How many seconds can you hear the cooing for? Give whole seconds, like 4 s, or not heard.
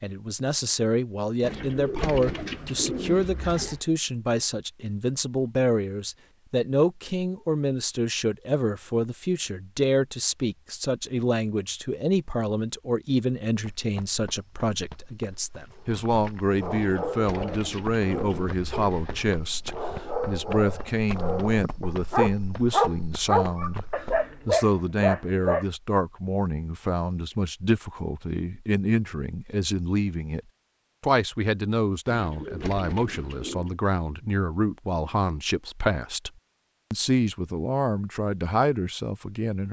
7 s.